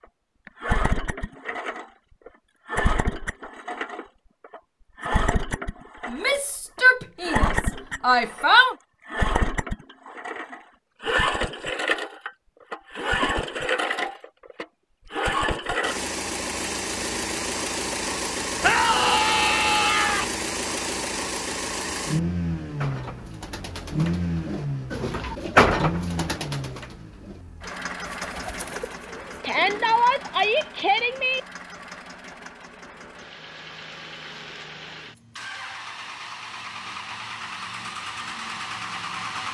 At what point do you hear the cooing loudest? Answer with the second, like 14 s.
26 s.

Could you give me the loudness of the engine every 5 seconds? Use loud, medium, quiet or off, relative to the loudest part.
loud, loud, loud, loud, loud, medium, quiet, medium.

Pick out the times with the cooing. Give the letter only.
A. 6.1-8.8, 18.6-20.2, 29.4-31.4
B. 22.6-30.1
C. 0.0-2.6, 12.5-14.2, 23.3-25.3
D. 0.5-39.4
B.